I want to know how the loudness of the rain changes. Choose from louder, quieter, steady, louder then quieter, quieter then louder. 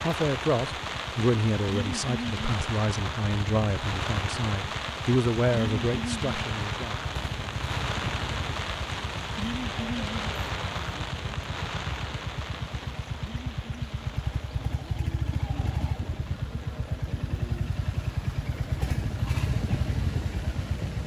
quieter.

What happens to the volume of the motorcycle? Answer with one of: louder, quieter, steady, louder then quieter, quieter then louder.
louder.